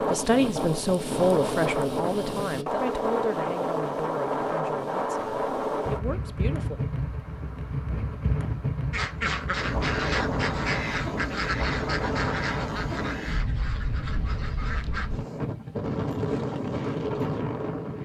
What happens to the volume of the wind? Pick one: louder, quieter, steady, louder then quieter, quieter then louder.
steady.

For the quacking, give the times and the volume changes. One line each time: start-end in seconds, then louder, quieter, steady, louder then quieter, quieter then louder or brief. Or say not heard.
8.9-15.1 quieter.